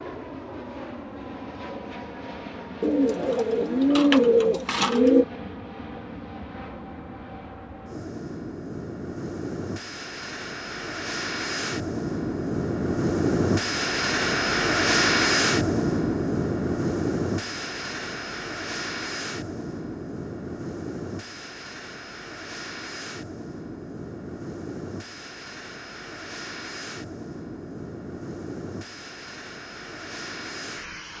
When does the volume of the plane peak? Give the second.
15 s.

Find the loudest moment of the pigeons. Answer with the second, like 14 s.
4 s.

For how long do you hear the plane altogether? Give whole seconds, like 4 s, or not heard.
31 s.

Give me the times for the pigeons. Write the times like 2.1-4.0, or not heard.
2.8-5.2.